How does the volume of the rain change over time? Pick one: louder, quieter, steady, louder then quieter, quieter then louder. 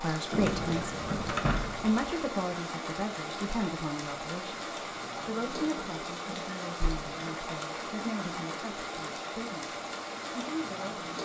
steady.